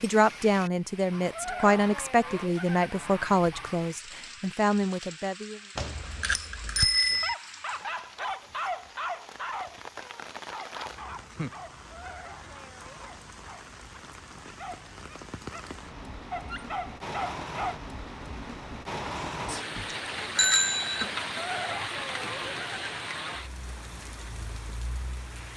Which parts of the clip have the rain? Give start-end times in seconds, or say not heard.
0.0-25.5.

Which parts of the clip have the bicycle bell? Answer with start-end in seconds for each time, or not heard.
5.8-7.3, 19.1-21.1.